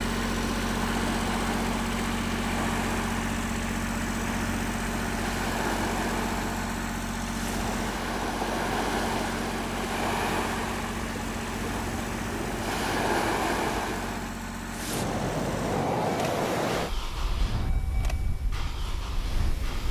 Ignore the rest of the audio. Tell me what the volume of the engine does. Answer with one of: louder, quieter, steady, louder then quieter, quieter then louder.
quieter.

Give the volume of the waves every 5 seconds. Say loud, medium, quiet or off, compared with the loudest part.
medium, loud, loud, loud.